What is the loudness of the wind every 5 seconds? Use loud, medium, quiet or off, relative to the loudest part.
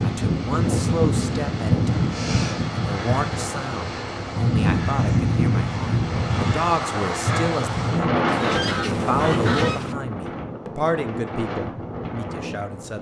loud, loud, medium.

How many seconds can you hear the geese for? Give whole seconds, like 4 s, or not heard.
2 s.